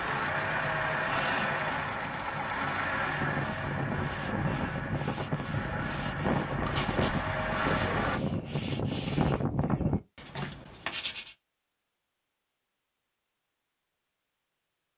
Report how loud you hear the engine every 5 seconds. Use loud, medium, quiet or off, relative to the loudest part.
loud, loud, off.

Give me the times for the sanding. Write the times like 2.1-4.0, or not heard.
2.9-11.3.